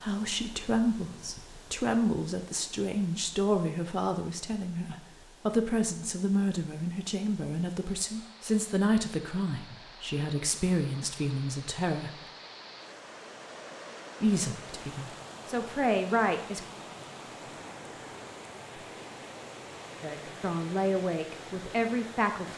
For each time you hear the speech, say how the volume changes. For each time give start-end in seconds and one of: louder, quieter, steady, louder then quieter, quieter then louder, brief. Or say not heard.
0.0-12.2 steady
14.2-16.6 brief
20.0-22.5 brief.